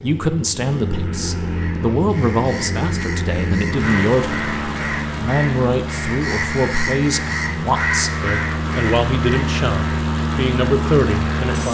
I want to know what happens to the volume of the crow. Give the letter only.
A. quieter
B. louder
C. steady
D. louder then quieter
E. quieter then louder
B.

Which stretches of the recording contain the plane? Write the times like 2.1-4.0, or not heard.
0.0-11.6.